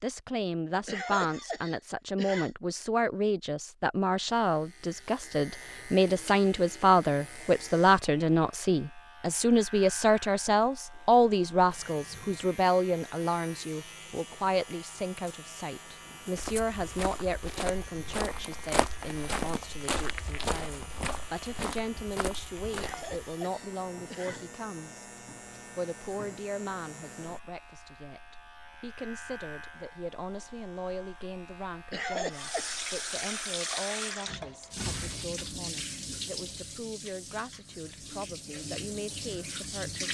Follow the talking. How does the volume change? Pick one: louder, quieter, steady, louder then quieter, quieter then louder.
quieter.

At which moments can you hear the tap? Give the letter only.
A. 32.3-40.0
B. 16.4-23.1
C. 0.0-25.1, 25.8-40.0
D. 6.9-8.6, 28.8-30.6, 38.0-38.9
A.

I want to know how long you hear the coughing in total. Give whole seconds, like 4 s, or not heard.
4 s.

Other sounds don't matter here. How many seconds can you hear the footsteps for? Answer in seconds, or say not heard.
7 s.